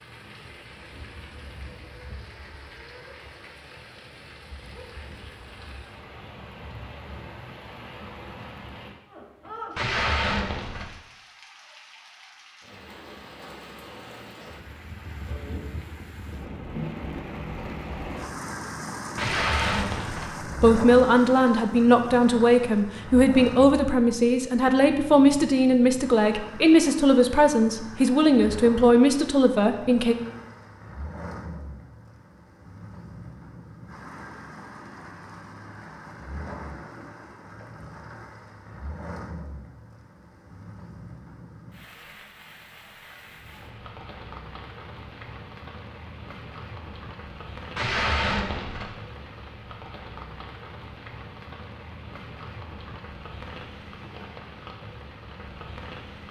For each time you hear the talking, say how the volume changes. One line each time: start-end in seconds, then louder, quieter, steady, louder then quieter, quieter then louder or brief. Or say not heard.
20.5-30.1 steady.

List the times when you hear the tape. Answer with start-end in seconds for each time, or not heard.
9.8-10.9, 19.1-20.4, 47.8-48.9.